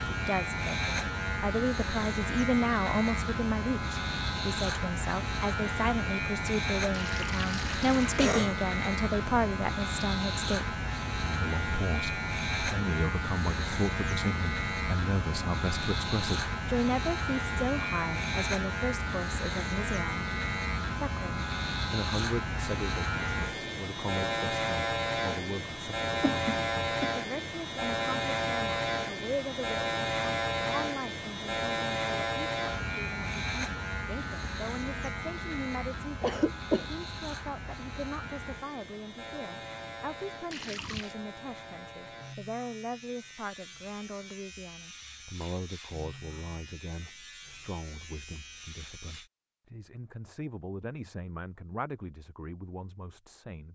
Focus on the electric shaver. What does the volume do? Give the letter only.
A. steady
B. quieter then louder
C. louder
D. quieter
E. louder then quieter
D.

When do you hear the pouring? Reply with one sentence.
The pouring can be heard from 6.9 to 8.2 s and from 40.5 to 41.1 s.